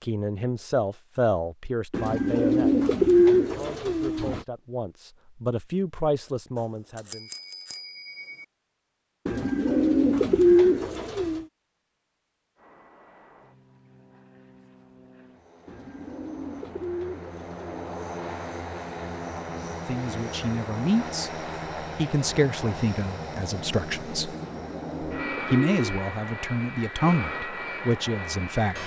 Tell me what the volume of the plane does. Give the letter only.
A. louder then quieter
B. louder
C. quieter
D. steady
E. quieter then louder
B.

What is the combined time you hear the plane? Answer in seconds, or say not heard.
16 s.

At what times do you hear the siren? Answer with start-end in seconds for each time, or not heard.
not heard.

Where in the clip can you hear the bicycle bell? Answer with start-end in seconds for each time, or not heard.
6.5-8.4.